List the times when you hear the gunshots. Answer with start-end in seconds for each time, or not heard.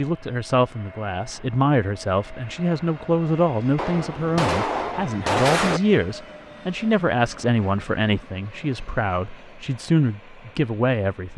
3.8-5.8.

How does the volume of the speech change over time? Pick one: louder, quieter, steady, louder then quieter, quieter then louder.
steady.